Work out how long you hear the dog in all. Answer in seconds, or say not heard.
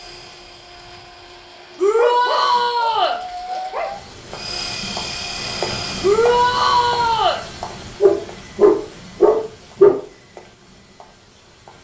4 s.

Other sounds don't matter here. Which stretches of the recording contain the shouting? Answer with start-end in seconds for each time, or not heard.
1.8-3.1, 6.0-7.4.